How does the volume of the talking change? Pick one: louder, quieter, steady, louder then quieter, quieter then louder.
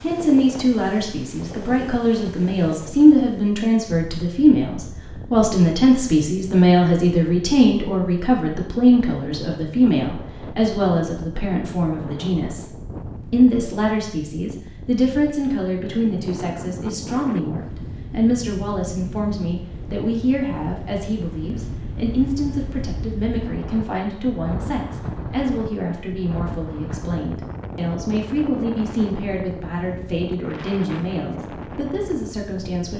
quieter.